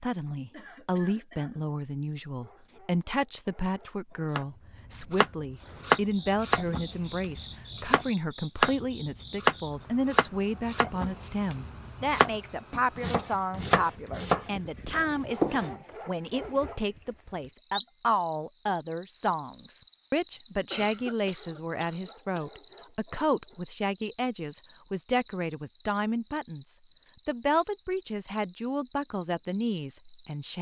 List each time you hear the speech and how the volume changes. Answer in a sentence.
You can hear the speech from 0.0 to 30.5 s, at a steady volume.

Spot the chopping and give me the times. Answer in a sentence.
You can hear the chopping from 4.3 to 15.8 s.